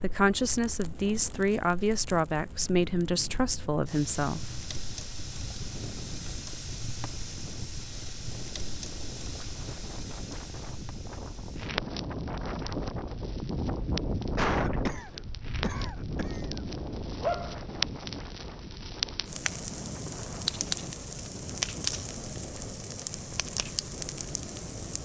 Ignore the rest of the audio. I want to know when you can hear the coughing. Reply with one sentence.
You can hear the coughing from 14.3 to 16.4 s.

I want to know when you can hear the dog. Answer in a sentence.
You can hear the dog from 17.2 to 17.6 s.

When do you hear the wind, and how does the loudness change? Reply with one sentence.
You can hear the wind from 0.0 to 24.9 s, getting louder then quieter.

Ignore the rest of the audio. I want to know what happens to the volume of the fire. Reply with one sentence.
The loudness of the fire goes up.